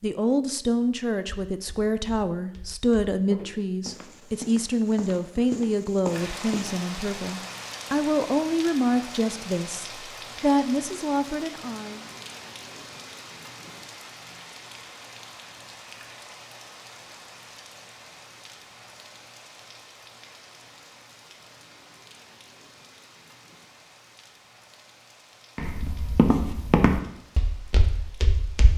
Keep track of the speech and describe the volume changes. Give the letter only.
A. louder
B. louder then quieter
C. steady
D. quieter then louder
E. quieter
C.